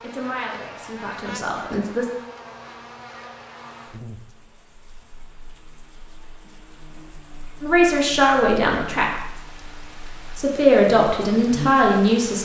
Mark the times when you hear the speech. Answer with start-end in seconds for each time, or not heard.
0.0-2.1, 7.6-9.1, 10.3-12.4.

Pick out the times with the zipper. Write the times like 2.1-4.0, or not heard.
not heard.